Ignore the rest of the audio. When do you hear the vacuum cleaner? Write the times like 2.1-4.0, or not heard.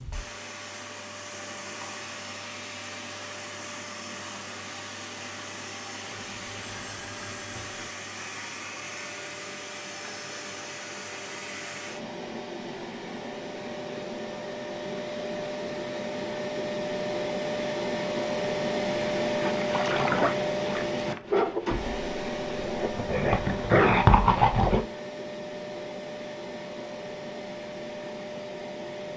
0.0-29.1.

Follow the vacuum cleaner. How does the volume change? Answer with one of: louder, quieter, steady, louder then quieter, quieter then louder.
louder then quieter.